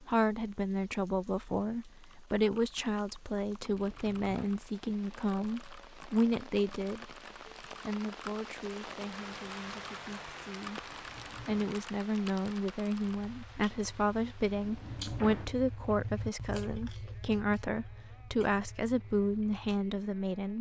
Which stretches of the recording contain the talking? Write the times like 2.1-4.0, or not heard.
0.0-20.5.